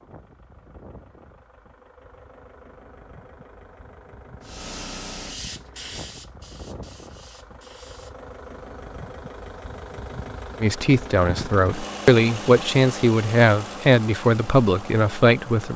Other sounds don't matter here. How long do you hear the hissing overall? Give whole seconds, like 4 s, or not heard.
4 s.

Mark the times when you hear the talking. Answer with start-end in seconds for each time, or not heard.
10.6-15.7.